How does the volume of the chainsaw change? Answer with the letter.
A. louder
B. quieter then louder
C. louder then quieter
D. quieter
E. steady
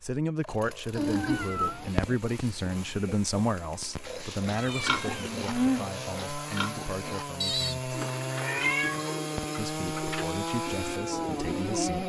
A.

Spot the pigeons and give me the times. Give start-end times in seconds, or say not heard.
7.9-12.0.